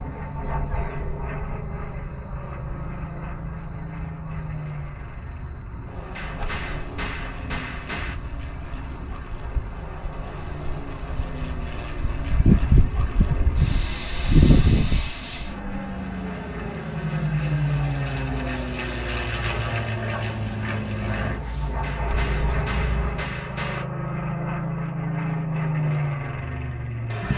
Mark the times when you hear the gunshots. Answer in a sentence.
The gunshots can be heard from 6.2 to 8.2 s and from 21.8 to 23.9 s.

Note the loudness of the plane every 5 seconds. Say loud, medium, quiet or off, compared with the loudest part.
medium, quiet, medium, loud, loud, loud.